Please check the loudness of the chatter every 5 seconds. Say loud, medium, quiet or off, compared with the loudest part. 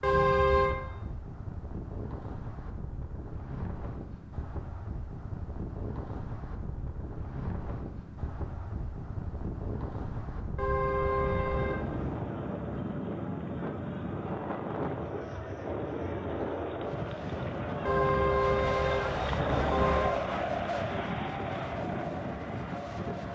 off, off, medium, loud, loud.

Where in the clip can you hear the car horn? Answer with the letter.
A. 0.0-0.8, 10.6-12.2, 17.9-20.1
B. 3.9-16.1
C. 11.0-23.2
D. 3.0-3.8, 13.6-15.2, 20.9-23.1
A.